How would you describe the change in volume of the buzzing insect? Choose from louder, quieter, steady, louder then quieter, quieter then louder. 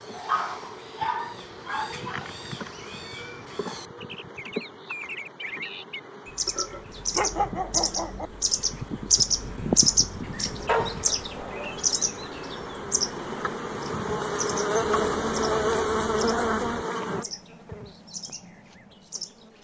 louder.